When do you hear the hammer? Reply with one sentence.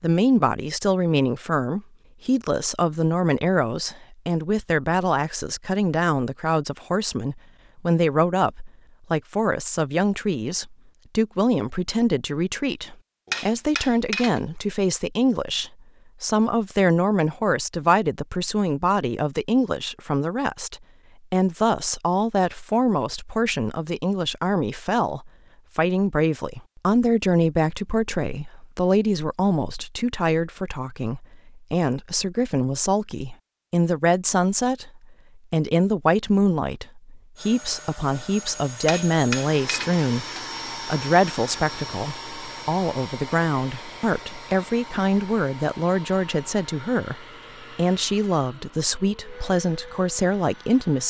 You can hear the hammer from 13.2 to 14.4 s and from 38.9 to 40.5 s.